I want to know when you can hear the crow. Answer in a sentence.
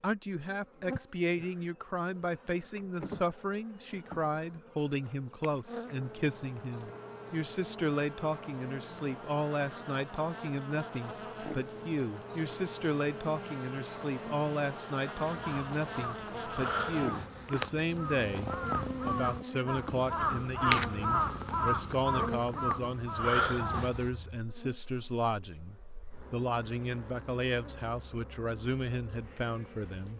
You can hear the crow from 15.4 to 24.1 s.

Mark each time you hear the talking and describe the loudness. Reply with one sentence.
You can hear the talking from 0.0 to 30.1 s, at a steady volume.